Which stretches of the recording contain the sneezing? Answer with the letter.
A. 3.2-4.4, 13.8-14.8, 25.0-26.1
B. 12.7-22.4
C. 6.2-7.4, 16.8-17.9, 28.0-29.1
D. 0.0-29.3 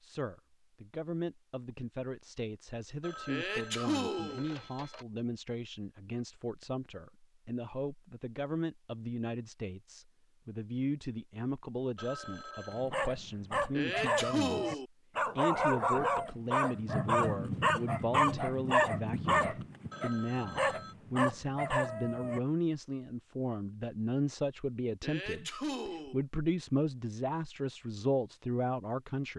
A.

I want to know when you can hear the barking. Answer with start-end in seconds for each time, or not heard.
12.7-22.4.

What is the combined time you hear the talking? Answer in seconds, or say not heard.
29 s.